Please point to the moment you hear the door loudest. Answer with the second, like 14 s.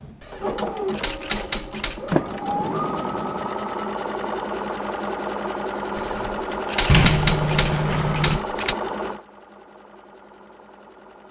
7 s.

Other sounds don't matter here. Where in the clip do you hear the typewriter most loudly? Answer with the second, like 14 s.
7 s.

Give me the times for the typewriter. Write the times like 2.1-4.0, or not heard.
0.2-2.2, 6.0-8.8.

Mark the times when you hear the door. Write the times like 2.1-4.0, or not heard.
2.1-3.5, 6.8-8.4.